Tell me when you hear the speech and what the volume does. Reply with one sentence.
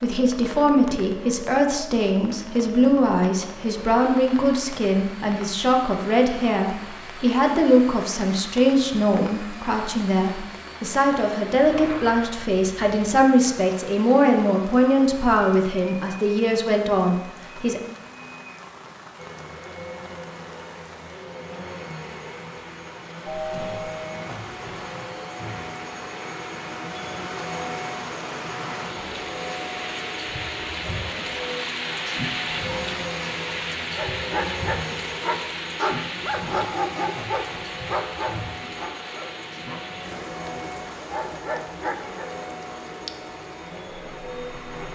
You can hear the speech from 0.0 to 17.8 s, at a steady volume.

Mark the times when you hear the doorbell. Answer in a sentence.
You can hear the doorbell from 11.7 to 12.2 s and from 23.2 to 24.3 s.